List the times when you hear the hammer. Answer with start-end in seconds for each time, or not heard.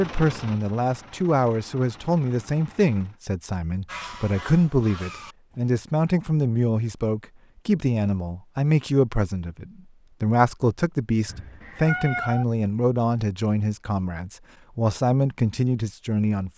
not heard.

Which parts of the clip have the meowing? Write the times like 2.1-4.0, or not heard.
11.2-12.4.